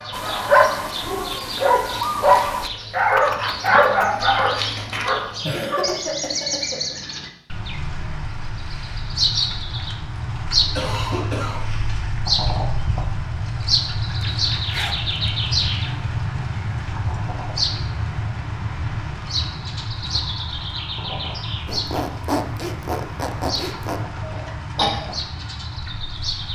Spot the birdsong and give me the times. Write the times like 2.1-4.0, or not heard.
0.0-26.5.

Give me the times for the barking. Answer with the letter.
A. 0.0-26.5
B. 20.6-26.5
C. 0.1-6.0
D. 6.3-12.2
C.